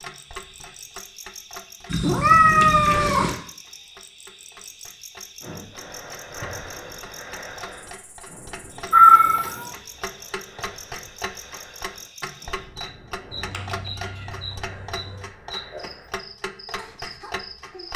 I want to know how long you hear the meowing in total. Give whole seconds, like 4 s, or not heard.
4 s.